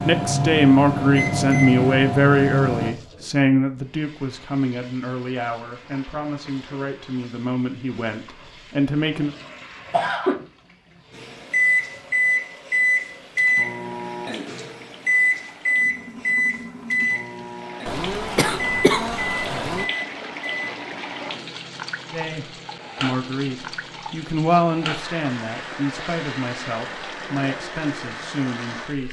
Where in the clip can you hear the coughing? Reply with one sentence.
You can hear the coughing from 9.2 to 10.3 s and from 17.9 to 19.9 s.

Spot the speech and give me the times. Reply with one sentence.
You can hear the speech from 0.0 to 9.3 s and from 22.1 to 29.0 s.